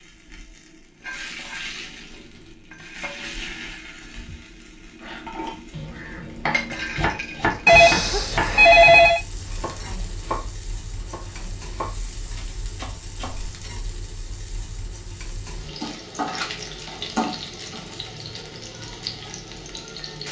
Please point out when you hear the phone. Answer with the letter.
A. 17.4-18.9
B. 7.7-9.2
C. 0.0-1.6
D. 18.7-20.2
B.